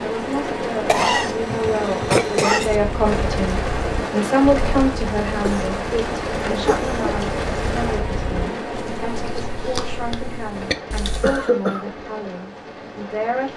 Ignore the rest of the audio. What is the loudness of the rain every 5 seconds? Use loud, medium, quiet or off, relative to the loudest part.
loud, loud, medium.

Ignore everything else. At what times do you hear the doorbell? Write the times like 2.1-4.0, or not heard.
not heard.